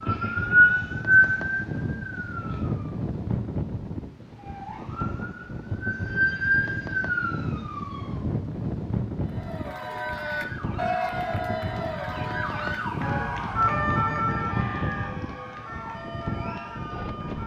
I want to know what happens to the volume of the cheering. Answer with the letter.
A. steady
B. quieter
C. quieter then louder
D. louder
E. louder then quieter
B.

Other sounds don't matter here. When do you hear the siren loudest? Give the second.
1 s.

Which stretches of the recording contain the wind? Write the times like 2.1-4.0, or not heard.
0.0-17.4.